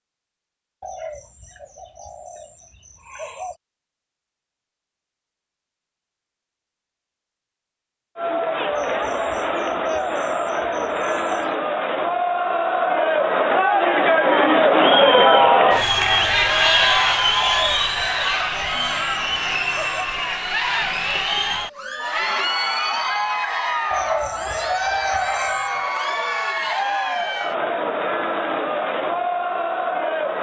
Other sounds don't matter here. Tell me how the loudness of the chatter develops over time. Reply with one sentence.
The volume of the chatter goes up, then down.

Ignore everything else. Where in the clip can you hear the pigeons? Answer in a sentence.
The pigeons can be heard from 0.8 to 3.6 s, from 8.7 to 11.6 s, from 17.4 to 20.1 s and from 23.9 to 25.8 s.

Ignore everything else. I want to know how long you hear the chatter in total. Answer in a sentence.
You can hear the chatter for 22 seconds altogether.